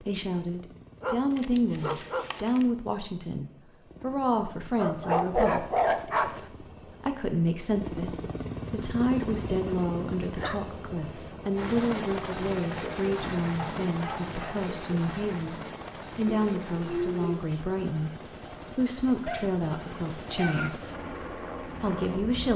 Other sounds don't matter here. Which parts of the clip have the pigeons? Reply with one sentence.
The pigeons can be heard from 16.2 to 17.4 s.